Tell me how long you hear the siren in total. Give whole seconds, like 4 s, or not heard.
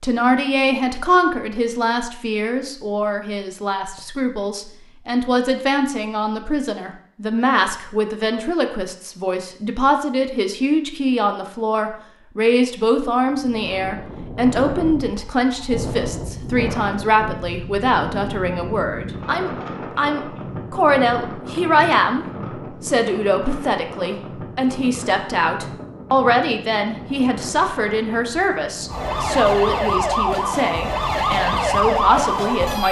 4 s.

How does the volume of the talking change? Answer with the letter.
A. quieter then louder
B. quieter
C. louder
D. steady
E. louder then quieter
D.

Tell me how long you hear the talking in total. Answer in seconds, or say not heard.
33 s.